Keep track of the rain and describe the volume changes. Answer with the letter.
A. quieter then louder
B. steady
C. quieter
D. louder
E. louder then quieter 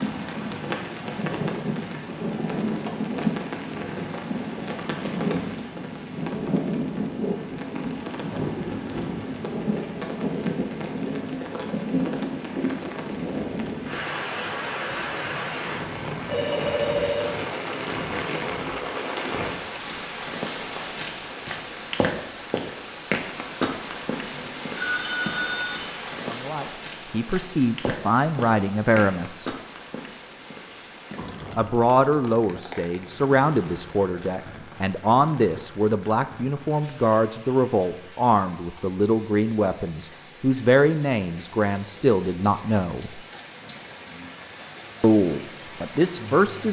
C.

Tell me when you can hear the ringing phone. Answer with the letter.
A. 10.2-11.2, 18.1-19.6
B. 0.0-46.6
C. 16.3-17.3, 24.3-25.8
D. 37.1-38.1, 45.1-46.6
C.